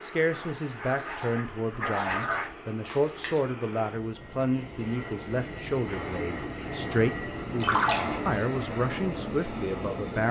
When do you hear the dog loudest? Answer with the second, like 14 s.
2 s.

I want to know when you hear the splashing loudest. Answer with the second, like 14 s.
8 s.